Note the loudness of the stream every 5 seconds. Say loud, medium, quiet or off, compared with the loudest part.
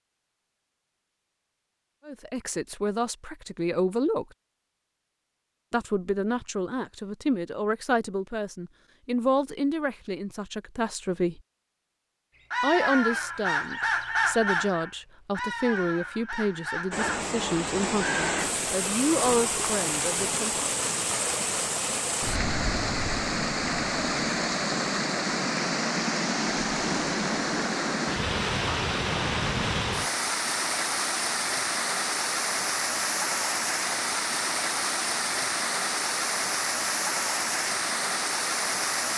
off, off, off, loud, loud, loud, loud, loud.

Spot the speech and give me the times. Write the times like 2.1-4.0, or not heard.
2.0-4.2, 5.7-11.4, 12.6-20.6.